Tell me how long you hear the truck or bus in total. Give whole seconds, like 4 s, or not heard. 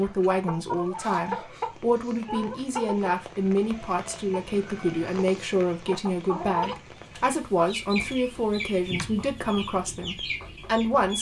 not heard.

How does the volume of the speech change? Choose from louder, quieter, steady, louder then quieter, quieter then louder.
steady.